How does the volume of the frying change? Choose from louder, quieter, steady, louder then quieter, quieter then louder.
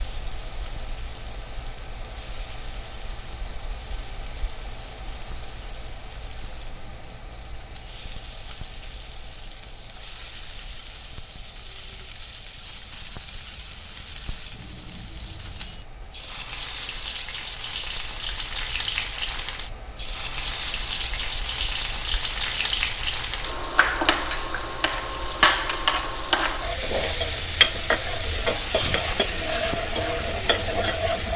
louder.